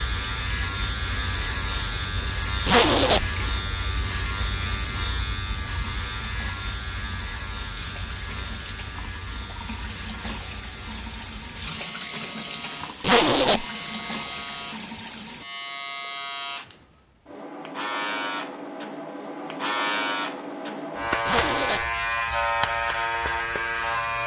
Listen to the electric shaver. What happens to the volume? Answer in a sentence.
The loudness of the electric shaver goes down, then up.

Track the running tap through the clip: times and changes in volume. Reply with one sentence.
You can hear the running tap from 0.0 to 15.4 s, getting louder.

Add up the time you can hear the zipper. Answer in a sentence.
You can hear the zipper for 2 seconds altogether.